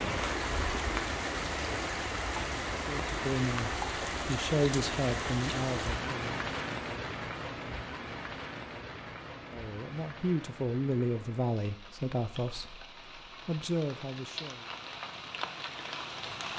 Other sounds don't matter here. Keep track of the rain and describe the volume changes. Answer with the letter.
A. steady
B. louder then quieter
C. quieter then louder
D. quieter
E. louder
C.